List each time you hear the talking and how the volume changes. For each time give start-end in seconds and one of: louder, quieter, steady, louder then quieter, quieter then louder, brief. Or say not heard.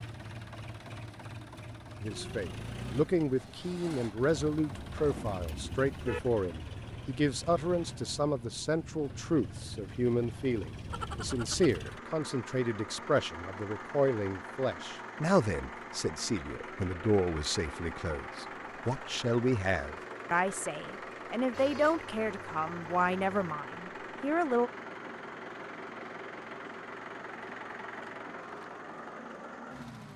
2.0-24.7 steady.